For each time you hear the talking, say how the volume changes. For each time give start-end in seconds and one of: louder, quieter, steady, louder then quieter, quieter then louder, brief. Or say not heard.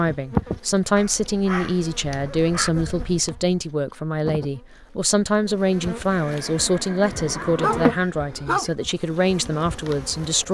0.0-10.4 steady.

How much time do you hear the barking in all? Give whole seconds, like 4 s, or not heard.
3 s.